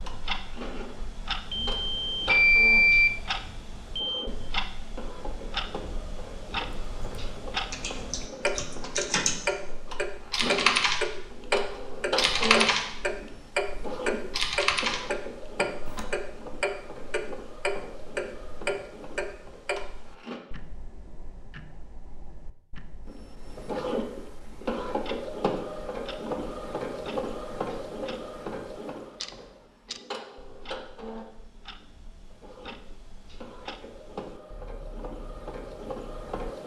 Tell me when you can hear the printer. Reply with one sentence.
You can hear the printer from 0.0 to 20.4 s and from 23.1 to 36.6 s.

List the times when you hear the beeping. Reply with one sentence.
You can hear the beeping from 1.5 to 4.3 s.